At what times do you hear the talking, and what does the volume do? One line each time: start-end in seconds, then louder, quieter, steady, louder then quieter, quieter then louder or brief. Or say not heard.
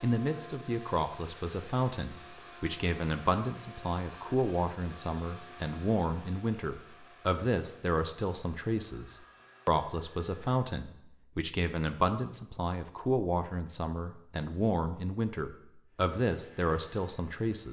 0.0-17.6 steady.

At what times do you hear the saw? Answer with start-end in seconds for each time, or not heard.
not heard.